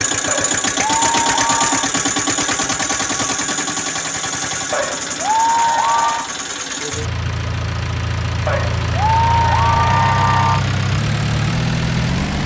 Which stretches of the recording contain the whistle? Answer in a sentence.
The whistle can't be heard in this clip.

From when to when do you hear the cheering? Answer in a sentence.
The cheering can be heard from 0.2 to 1.9 s, from 4.7 to 6.3 s and from 8.4 to 10.6 s.